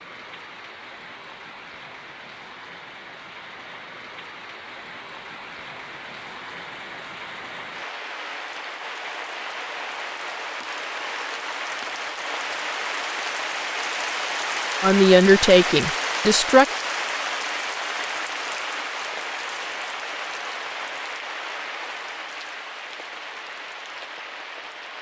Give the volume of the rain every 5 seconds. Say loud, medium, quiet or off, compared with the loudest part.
quiet, medium, loud, loud, medium.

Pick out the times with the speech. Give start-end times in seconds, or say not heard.
14.8-16.6.